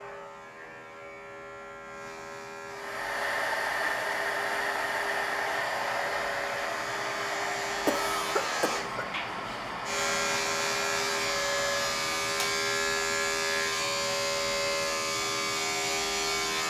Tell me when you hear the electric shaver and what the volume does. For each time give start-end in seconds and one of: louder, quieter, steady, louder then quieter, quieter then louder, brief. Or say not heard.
0.0-16.6 louder.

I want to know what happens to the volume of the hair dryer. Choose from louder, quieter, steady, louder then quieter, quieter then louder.
quieter.